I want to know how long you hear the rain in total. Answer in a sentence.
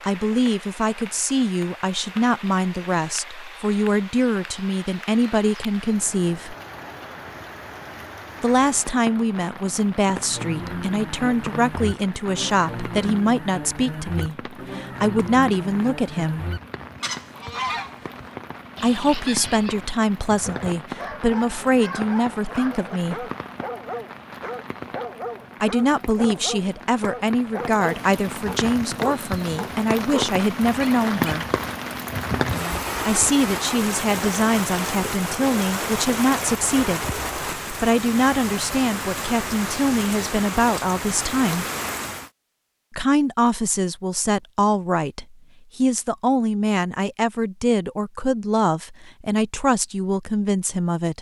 You can hear the rain for 42 seconds altogether.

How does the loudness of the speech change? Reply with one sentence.
The volume of the speech stays about the same.